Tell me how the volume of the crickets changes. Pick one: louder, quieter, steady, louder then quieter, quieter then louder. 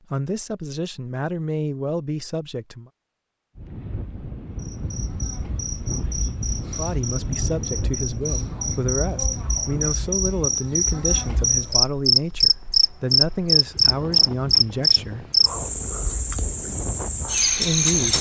louder then quieter.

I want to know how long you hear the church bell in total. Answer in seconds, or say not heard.
not heard.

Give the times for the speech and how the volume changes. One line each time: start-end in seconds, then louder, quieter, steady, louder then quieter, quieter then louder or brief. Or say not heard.
0.1-2.9 brief
6.7-15.2 steady
17.6-18.1 brief.